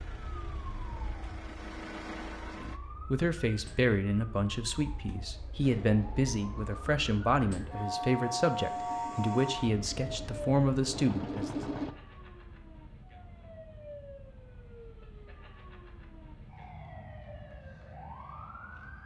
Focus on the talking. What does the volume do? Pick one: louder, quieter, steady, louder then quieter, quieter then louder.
steady.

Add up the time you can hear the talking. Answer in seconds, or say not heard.
9 s.